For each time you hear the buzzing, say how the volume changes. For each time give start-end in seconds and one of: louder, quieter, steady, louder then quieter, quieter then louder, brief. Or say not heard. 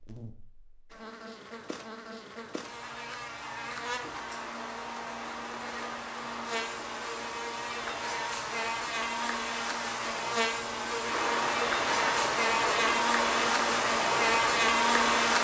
0.0-15.3 louder.